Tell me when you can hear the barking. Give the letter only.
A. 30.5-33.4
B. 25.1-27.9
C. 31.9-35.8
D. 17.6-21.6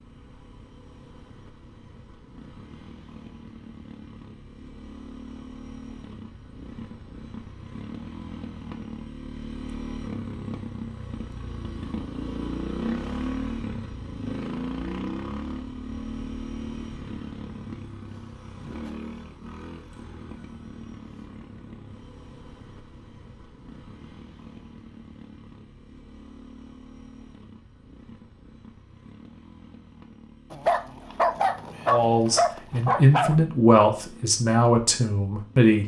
A.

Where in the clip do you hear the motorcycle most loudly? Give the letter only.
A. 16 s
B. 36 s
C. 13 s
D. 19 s
C.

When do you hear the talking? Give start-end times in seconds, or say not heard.
31.9-35.8.